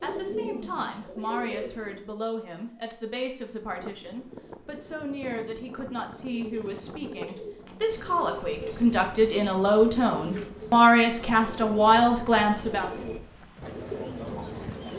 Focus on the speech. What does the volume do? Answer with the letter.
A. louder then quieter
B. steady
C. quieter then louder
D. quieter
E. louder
E.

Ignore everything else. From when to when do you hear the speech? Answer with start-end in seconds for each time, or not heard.
0.0-12.9.